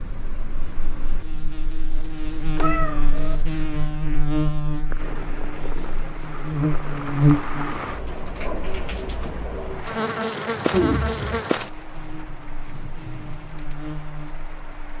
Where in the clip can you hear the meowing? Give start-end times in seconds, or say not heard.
2.5-3.4, 10.7-11.4.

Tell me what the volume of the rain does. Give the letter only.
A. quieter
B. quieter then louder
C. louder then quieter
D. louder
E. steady
C.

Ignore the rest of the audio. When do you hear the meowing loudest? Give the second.
11 s.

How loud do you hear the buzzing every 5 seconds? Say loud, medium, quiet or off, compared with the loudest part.
medium, loud, medium.